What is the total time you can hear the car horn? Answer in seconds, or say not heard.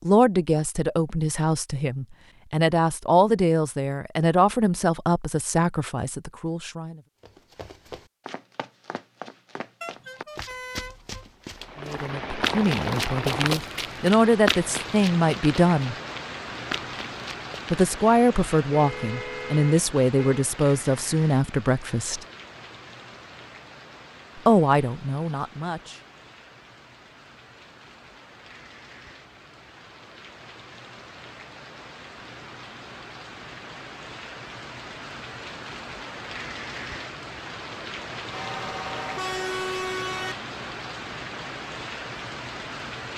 5 s.